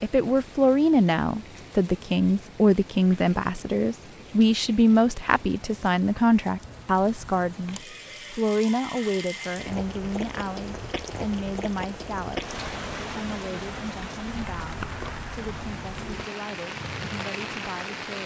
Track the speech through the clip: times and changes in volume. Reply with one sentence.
You can hear the speech from 0.0 to 18.2 s, getting quieter.